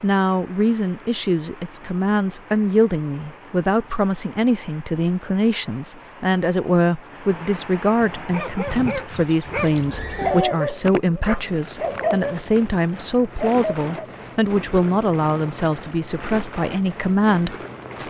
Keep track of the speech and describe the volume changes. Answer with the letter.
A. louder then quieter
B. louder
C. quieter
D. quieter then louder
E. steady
E.